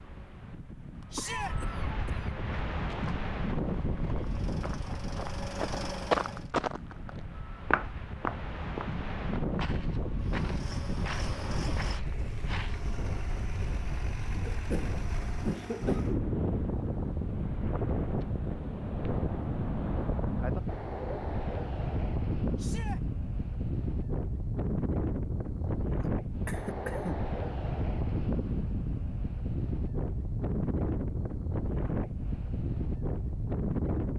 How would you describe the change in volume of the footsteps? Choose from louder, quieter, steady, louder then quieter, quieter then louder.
louder then quieter.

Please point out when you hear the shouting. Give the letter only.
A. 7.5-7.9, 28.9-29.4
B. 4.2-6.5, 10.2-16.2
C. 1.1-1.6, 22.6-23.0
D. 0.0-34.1
C.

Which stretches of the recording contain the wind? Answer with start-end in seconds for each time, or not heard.
0.0-34.1.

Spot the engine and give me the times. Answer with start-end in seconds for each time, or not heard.
4.2-6.5, 10.2-16.2.